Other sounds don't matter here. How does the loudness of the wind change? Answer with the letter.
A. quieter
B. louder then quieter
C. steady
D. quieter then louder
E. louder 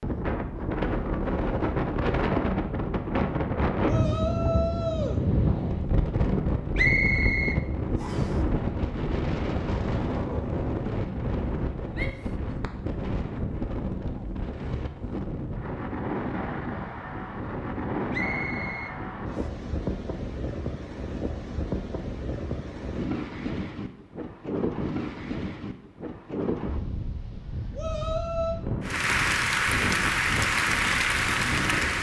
A.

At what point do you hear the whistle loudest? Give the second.
7 s.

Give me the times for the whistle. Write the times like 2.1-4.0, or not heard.
6.8-8.3, 18.1-19.5.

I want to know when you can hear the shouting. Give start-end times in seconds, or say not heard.
3.9-5.2, 11.9-12.3, 27.8-28.6.